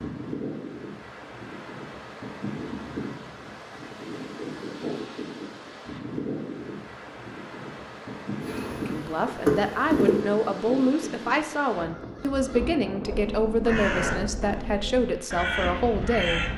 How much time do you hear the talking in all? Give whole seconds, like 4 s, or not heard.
8 s.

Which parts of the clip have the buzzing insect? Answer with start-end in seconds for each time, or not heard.
8.4-10.2.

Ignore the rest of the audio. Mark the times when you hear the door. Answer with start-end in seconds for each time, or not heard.
not heard.